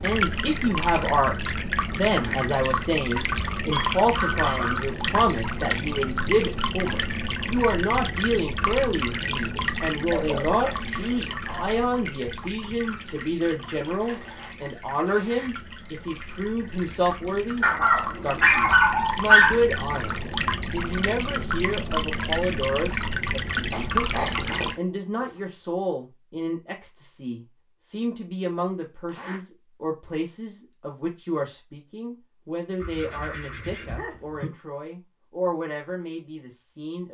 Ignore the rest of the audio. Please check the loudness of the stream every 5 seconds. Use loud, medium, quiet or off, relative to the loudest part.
loud, loud, medium, medium, loud, off, off, off.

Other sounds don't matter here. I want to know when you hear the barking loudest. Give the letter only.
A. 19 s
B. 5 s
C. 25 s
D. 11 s
A.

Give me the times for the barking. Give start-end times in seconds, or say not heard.
3.7-4.8, 10.1-11.8, 17.6-19.6, 23.7-25.4, 32.8-34.5.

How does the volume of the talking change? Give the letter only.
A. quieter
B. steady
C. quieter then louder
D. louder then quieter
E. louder
A.